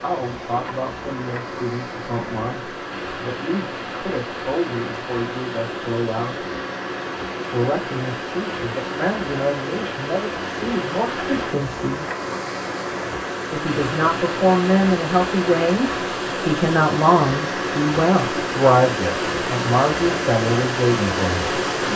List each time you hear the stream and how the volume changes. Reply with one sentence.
You can hear the stream from 0.0 to 21.9 s, getting louder.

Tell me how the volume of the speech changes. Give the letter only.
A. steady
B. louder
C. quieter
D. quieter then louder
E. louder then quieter
B.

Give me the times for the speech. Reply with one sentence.
The speech can be heard from 0.0 to 6.5 s, from 7.5 to 12.1 s and from 13.5 to 21.9 s.